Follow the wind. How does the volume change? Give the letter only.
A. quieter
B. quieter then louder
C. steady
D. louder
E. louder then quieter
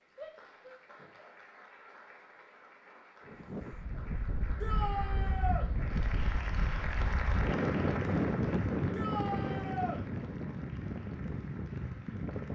E.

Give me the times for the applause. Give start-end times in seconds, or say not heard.
0.0-12.5.